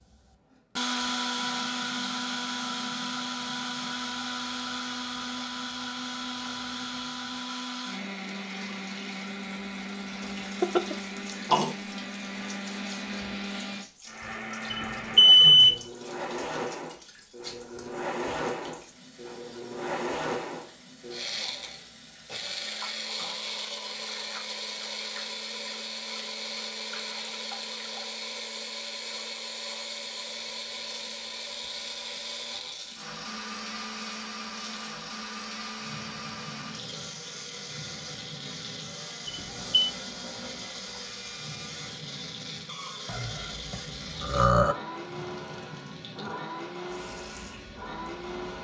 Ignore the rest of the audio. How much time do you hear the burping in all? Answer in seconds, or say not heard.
3 s.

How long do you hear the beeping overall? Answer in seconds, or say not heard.
2 s.